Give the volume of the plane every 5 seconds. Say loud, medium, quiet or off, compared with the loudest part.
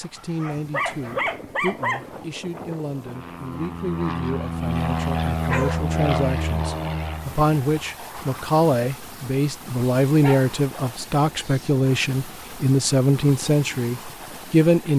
loud, loud, off.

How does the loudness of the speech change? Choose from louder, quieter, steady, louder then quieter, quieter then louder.
louder.